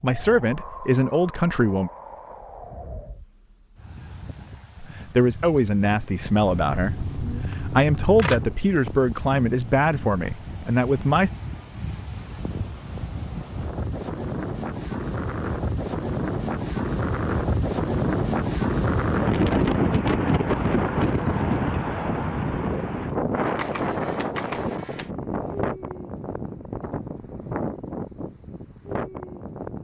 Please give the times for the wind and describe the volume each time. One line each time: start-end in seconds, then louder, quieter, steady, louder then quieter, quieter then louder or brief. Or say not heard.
0.0-29.8 louder then quieter.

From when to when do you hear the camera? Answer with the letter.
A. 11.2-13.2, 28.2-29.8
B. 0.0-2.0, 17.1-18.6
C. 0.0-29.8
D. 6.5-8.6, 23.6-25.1
D.